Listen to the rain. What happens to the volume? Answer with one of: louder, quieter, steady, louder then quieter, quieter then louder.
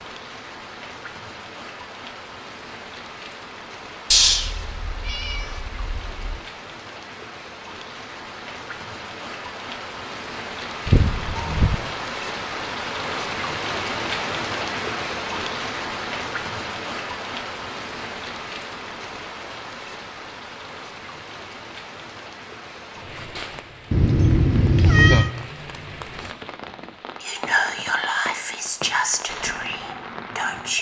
louder then quieter.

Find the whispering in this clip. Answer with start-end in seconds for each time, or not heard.
27.2-30.7.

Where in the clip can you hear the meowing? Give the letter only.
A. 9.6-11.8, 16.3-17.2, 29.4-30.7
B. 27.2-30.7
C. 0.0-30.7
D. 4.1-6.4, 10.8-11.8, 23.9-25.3
D.